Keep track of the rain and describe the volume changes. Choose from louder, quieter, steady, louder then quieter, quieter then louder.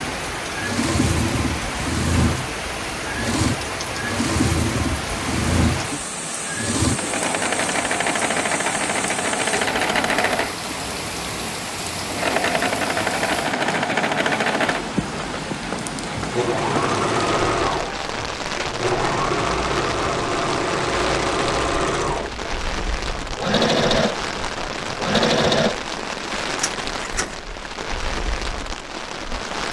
steady.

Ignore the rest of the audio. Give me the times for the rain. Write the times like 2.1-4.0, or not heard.
0.0-29.6.